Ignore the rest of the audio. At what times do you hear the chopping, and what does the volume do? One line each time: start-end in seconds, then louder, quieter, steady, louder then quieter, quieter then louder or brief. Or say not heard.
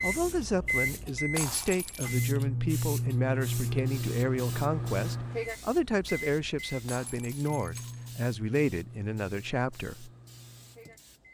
not heard.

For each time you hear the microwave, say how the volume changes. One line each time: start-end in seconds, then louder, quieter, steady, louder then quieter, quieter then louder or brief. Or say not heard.
0.0-11.2 quieter.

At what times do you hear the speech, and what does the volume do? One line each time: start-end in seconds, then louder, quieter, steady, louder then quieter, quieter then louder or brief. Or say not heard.
0.0-10.1 steady.